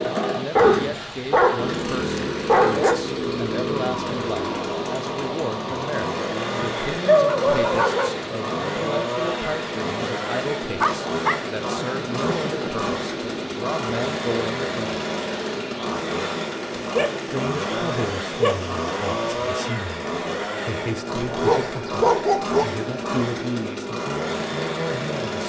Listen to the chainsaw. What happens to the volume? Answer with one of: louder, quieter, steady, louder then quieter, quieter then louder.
steady.